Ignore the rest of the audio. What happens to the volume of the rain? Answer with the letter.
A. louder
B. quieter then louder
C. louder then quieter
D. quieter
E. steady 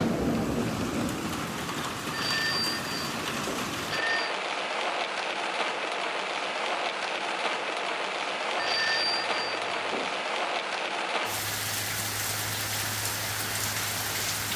E.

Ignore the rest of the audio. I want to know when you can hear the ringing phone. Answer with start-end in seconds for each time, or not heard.
2.1-4.3, 8.6-10.2.